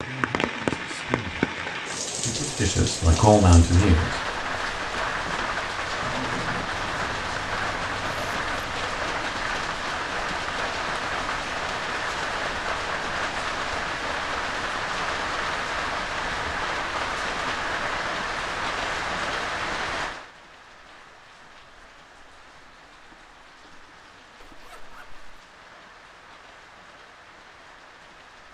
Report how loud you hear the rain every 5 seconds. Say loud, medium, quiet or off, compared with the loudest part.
loud, loud, loud, loud, quiet, quiet.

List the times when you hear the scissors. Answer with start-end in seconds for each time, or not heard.
6.0-6.7.